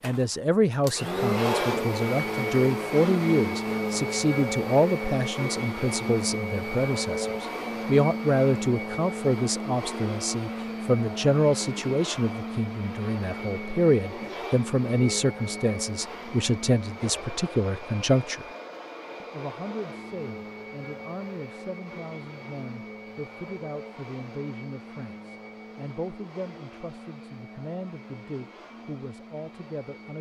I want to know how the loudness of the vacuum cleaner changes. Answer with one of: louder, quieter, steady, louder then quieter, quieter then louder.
quieter.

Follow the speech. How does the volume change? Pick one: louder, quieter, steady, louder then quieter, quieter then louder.
quieter.